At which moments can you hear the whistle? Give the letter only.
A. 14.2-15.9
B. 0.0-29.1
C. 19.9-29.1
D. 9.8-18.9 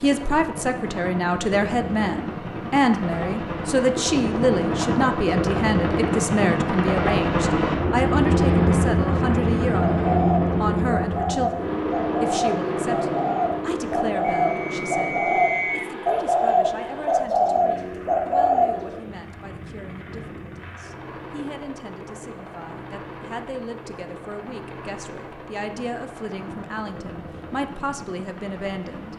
A.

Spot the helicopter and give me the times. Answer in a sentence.
The helicopter can be heard from 0.0 to 29.1 s.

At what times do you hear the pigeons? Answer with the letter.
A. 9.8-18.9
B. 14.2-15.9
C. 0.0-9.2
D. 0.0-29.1
A.